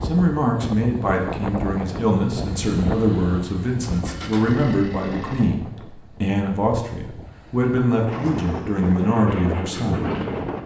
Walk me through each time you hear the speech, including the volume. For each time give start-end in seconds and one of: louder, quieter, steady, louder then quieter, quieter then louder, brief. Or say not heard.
0.0-10.1 steady.